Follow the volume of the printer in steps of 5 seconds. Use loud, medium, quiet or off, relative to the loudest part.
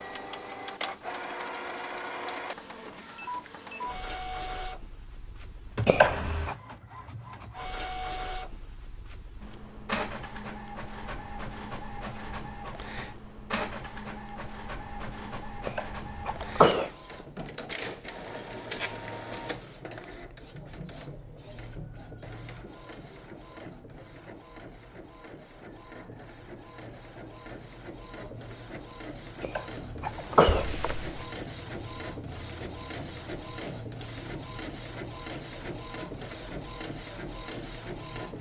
loud, loud, loud, loud, medium, medium, loud, loud.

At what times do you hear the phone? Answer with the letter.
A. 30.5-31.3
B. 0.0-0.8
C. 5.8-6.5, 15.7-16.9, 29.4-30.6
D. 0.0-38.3
A.